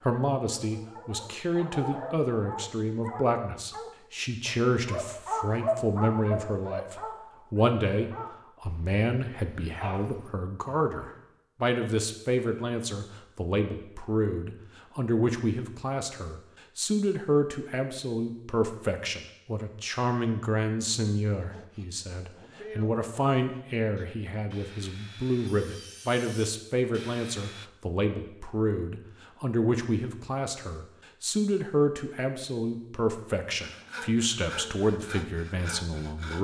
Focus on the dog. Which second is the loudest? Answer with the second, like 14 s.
6 s.